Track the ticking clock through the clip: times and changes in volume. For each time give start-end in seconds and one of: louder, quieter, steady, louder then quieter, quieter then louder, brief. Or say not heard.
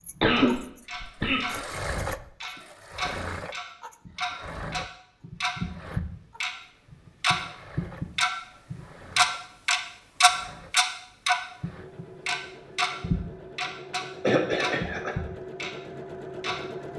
0.0-1.6 brief
2.4-16.9 louder then quieter.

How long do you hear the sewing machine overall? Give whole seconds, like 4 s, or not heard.
17 s.